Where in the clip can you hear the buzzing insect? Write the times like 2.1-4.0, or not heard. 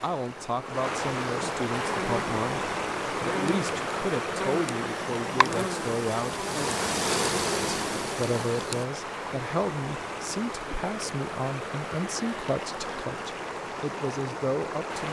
1.7-8.8.